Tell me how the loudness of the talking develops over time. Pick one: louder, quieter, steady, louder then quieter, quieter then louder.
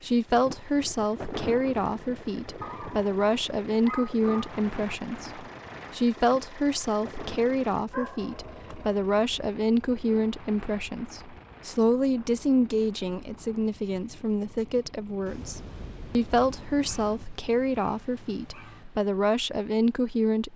steady.